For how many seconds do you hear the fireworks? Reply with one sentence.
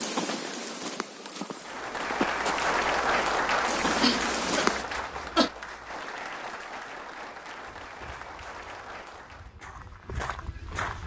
You can't hear the fireworks here.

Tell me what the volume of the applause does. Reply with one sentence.
The volume of the applause goes down.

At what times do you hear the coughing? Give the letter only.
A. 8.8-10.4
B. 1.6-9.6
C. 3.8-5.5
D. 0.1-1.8
C.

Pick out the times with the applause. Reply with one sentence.
The applause can be heard from 1.6 to 9.6 s.